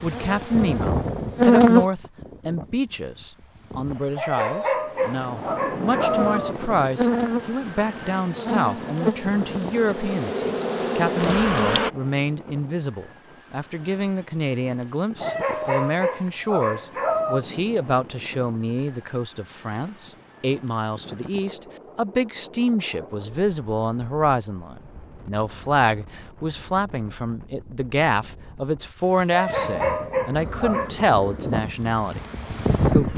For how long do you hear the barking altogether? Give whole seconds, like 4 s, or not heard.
6 s.